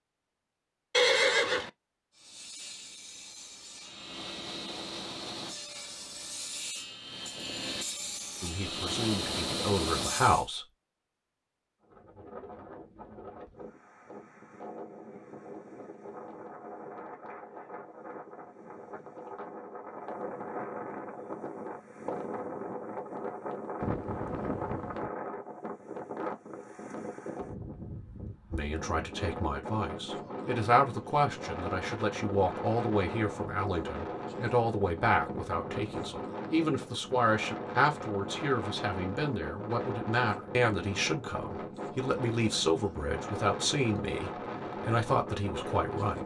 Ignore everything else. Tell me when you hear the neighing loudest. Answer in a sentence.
The volume of the neighing peaks at 1 second.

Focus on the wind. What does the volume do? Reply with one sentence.
The volume of the wind goes up.